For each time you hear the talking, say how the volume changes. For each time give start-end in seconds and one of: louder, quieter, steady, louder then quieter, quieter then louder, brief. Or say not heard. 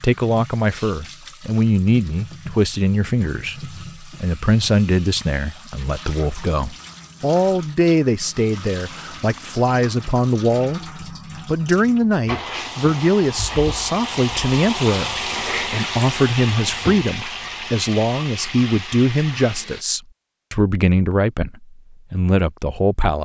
0.0-23.2 steady.